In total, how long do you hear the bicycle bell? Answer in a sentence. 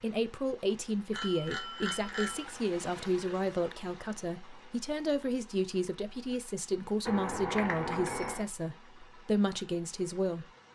You can hear the bicycle bell for 3 seconds altogether.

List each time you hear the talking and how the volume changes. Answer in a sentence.
You can hear the talking from 0.0 to 10.4 s, at a steady volume.